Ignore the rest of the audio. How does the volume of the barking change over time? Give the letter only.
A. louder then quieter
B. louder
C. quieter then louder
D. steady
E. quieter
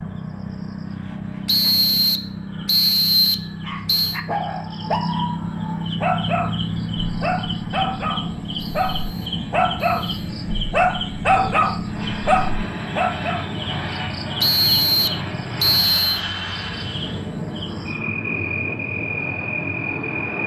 B.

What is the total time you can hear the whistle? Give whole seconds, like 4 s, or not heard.
6 s.